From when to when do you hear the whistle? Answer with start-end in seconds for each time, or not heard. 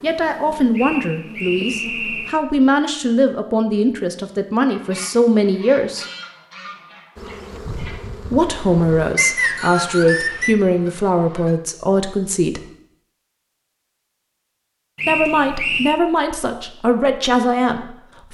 0.8-2.4, 9.2-10.6, 14.9-16.0.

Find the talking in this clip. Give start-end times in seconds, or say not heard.
0.0-6.0, 8.3-12.7, 15.1-18.2.